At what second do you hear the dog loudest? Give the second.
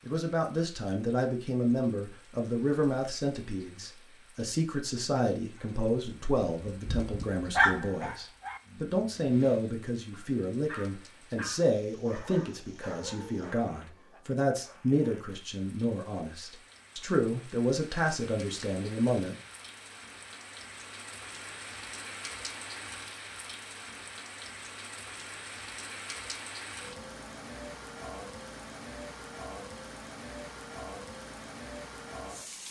8 s.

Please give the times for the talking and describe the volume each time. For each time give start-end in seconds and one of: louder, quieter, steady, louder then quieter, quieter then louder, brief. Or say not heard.
0.1-19.4 steady.